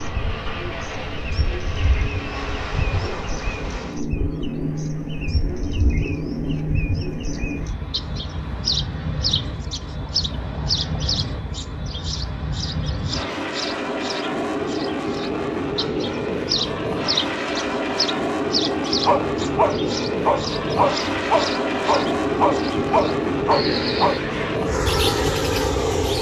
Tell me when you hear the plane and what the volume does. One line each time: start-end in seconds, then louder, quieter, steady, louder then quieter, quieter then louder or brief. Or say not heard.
0.0-26.1 louder.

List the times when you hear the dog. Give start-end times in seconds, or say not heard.
18.9-24.1.